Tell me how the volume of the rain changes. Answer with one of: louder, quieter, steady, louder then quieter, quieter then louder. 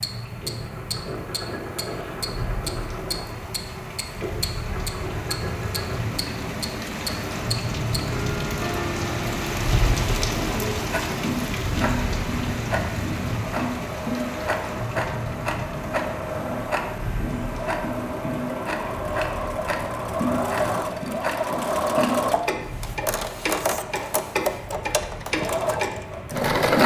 louder then quieter.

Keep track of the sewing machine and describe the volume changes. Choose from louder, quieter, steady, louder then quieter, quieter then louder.
louder.